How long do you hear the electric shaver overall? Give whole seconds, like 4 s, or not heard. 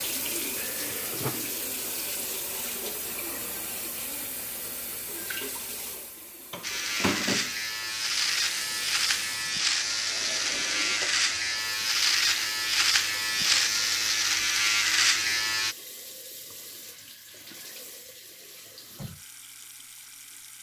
9 s.